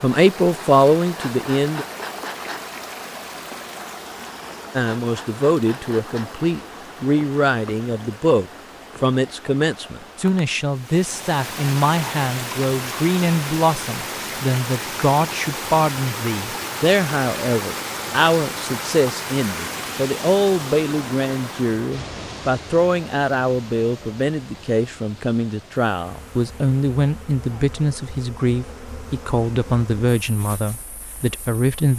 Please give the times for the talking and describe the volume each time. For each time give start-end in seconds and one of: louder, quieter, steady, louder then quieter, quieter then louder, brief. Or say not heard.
0.0-1.9 brief
4.8-31.9 steady.